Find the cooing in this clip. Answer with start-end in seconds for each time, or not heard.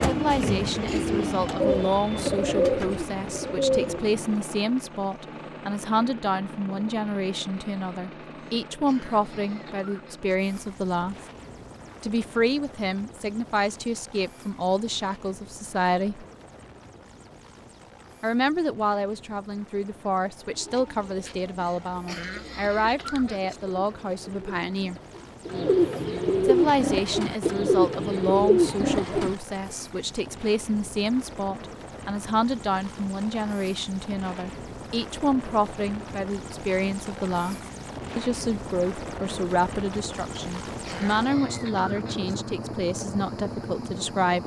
0.0-4.2, 20.4-29.4.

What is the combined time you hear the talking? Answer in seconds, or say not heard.
40 s.